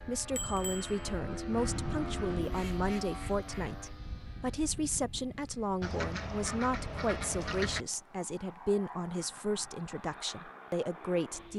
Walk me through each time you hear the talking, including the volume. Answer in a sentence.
The talking can be heard from 0.1 to 11.5 s, at a steady volume.